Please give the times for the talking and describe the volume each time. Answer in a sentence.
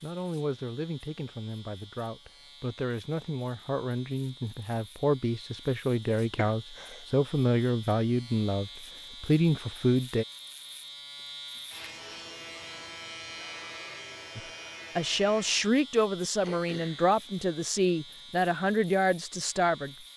You can hear the talking from 0.0 to 10.2 s, getting louder; and from 14.3 to 19.9 s, at a steady volume.